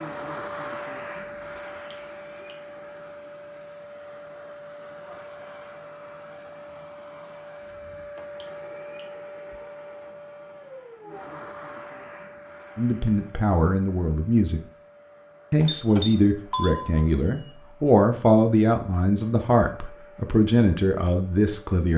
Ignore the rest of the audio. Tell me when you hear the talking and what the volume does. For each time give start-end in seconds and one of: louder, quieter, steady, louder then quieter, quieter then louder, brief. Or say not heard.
12.8-14.6 brief
15.5-21.9 steady.